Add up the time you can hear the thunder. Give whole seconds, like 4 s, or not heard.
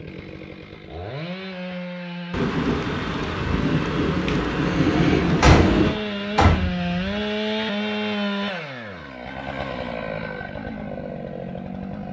4 s.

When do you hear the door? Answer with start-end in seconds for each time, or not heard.
4.9-7.2.